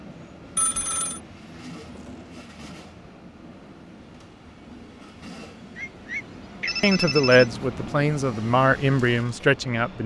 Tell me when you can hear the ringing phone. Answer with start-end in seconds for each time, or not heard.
0.6-1.2, 5.8-7.5.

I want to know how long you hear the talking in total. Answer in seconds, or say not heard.
3 s.